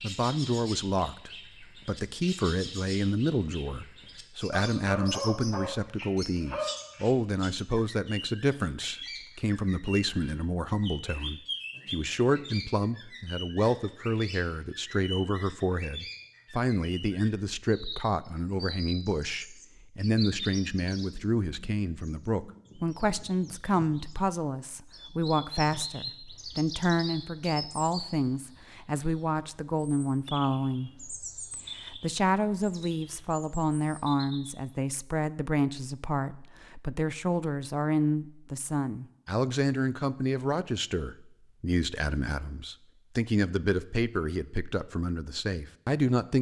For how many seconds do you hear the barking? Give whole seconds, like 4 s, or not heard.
3 s.